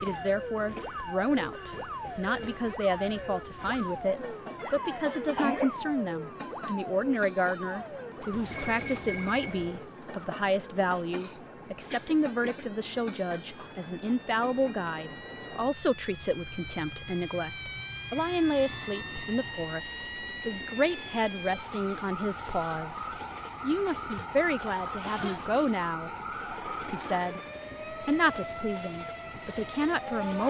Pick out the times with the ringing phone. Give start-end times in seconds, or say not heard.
8.3-9.8.